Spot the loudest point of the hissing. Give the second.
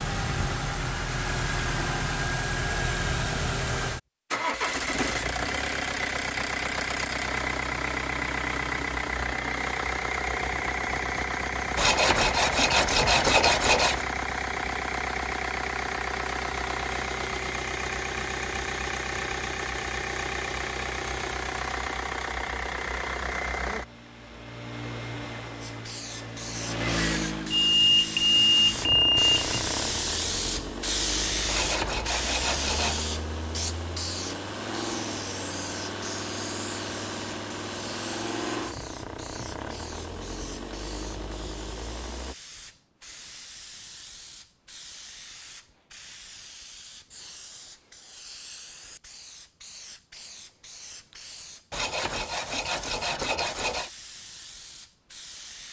31 s.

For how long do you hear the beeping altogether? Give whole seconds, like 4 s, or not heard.
2 s.